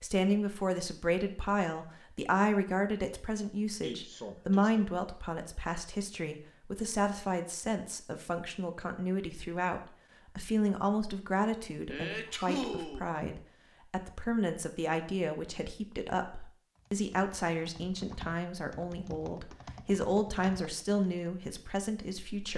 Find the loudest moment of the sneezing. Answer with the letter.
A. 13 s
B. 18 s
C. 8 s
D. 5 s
A.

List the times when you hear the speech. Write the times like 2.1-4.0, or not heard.
0.0-22.5.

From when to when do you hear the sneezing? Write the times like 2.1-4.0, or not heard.
3.8-4.8, 11.8-13.0.